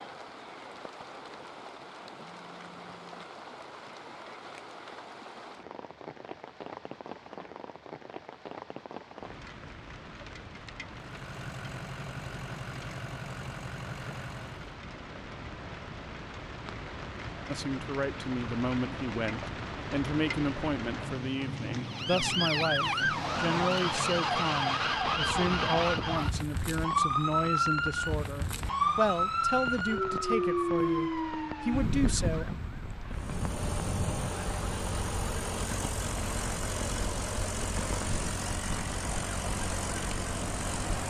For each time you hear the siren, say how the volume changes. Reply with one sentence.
You can hear the siren from 21.9 to 41.0 s, getting quieter.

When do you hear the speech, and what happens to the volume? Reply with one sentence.
You can hear the speech from 17.4 to 32.5 s, at a steady volume.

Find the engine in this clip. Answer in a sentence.
You can hear the engine from 10.9 to 14.8 s and from 33.1 to 41.0 s.